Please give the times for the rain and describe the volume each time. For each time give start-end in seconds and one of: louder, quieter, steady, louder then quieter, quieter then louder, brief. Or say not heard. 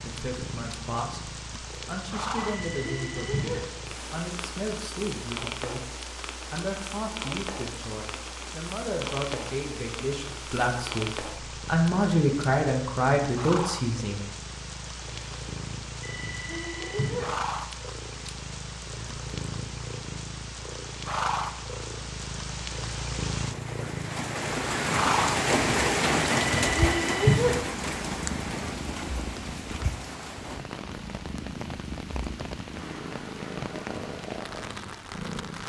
0.0-35.6 louder then quieter.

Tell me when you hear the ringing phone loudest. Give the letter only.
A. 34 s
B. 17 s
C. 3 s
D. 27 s
D.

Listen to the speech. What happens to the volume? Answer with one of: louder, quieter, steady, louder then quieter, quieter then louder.
louder.